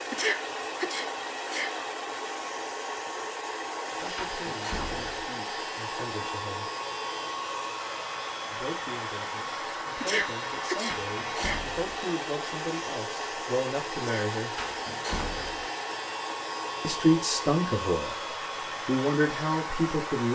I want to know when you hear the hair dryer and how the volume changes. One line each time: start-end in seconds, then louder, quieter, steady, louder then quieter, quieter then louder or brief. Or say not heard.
0.0-20.3 steady.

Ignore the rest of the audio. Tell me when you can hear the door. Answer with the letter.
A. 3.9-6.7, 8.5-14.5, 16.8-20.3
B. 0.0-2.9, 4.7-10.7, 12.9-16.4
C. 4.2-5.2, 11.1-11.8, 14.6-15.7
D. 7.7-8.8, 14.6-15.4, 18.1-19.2
C.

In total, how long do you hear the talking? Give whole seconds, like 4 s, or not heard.
12 s.